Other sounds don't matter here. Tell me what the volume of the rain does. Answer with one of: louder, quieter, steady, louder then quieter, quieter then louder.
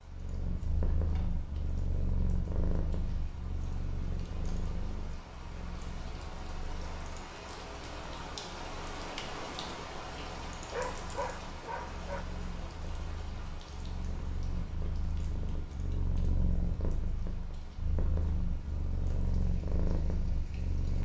louder then quieter.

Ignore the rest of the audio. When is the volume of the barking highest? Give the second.
11 s.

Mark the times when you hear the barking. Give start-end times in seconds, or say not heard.
10.7-12.2.